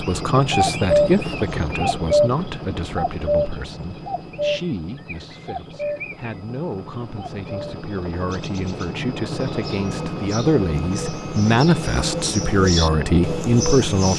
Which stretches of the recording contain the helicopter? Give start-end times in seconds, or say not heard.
0.0-14.1.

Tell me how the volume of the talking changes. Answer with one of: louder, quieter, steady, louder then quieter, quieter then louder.
quieter then louder.